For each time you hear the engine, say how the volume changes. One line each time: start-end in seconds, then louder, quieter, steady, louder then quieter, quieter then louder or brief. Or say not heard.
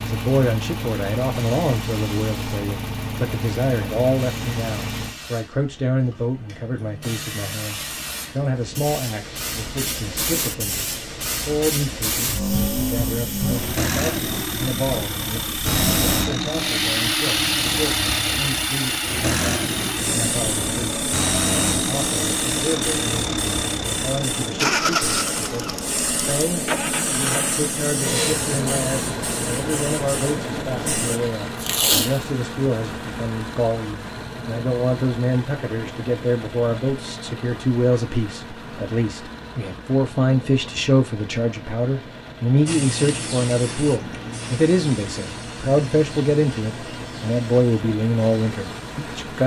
0.0-5.2 steady
12.3-49.4 quieter.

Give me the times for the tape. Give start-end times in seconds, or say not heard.
31.6-32.2.